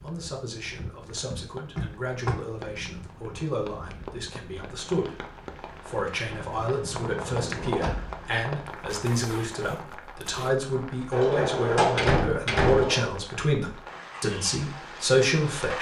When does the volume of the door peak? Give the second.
12 s.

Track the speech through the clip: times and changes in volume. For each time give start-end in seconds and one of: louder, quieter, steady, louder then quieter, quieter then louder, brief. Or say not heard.
0.0-15.7 louder.